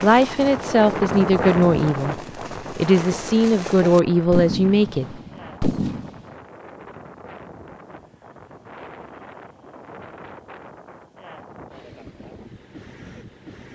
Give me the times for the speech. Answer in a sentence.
You can hear the speech from 0.0 to 5.2 s.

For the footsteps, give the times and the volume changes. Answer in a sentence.
You can't hear the footsteps here.